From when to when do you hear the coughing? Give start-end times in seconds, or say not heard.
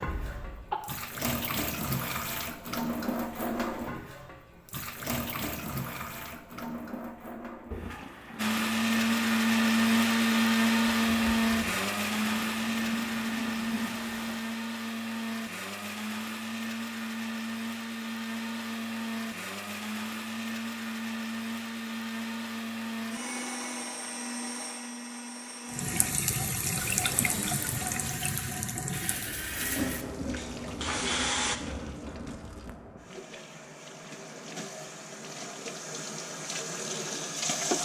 0.1-0.8.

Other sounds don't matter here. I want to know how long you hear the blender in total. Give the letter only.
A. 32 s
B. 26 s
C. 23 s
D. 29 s
C.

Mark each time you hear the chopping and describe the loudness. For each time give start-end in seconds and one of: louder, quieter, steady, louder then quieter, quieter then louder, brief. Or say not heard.
not heard.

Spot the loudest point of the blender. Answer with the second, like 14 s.
10 s.